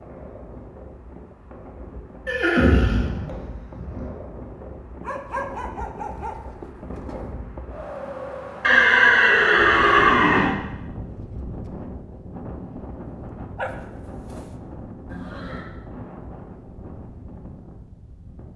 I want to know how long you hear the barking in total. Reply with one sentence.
The barking can be heard for 3 seconds in total.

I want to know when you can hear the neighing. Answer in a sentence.
The neighing can be heard from 2.2 to 4.1 s, from 8.6 to 10.6 s and from 15.1 to 15.7 s.